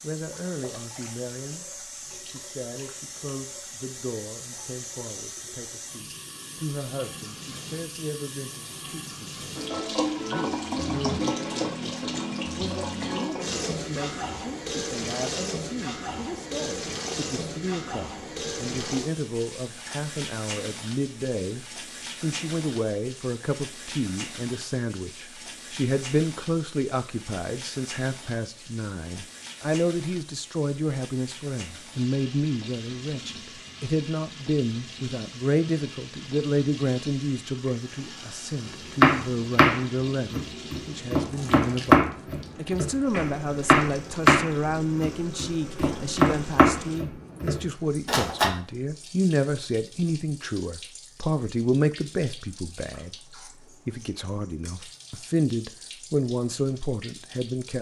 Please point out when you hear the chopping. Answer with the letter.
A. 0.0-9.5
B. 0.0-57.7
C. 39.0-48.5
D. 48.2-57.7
C.